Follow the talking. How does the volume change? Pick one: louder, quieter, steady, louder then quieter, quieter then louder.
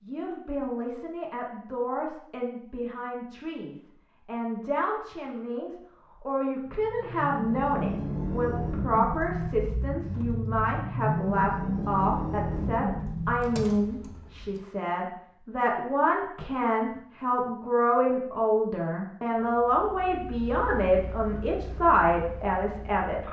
louder.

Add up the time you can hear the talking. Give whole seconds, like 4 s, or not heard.
23 s.